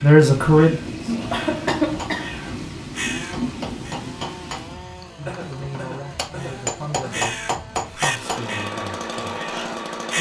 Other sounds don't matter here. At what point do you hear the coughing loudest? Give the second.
2 s.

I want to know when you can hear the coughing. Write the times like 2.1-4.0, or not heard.
1.1-2.6, 5.2-7.2.